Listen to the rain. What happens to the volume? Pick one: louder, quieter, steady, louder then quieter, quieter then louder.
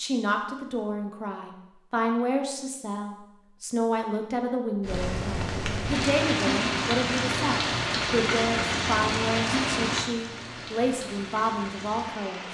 quieter.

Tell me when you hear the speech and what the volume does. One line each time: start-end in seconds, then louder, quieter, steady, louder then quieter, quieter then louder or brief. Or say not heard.
0.0-12.4 steady.